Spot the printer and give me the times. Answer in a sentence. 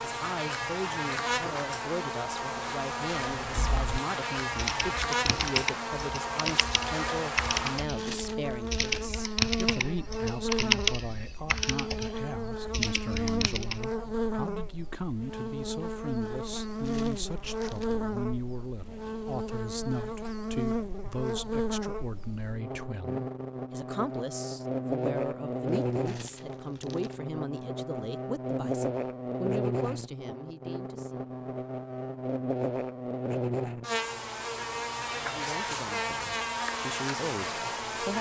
The printer can't be heard in this clip.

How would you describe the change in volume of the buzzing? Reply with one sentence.
The volume of the buzzing stays about the same.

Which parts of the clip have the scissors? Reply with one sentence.
The scissors can't be heard in this clip.